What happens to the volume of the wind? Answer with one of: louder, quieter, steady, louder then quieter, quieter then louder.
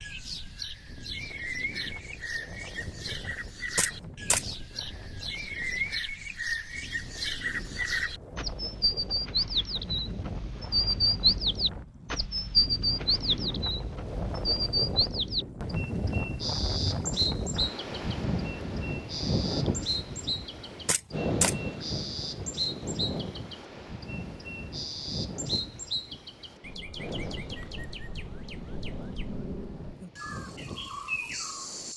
louder then quieter.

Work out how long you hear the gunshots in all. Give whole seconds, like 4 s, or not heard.
3 s.